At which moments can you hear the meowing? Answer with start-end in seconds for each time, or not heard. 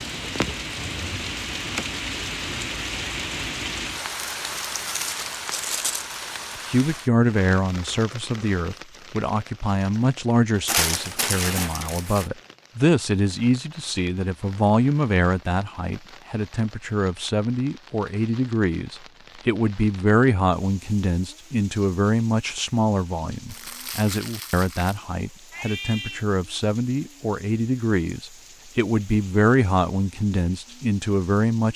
25.5-26.2.